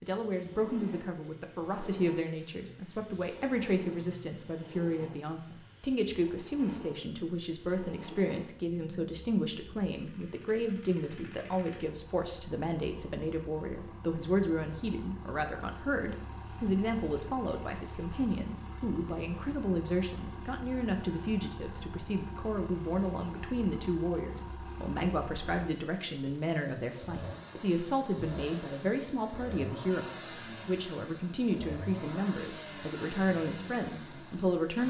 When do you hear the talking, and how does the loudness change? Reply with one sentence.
You can hear the talking from 0.0 to 34.8 s, at a steady volume.